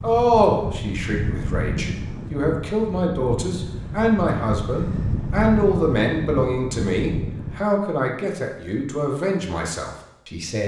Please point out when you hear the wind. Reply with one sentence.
The wind can be heard from 0.0 to 7.7 s.